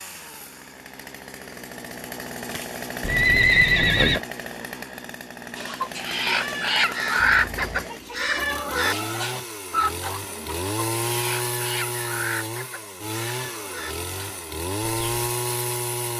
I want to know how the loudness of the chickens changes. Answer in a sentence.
The volume of the chickens goes down.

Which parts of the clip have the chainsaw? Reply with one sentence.
The chainsaw can be heard from 0.0 to 16.1 s.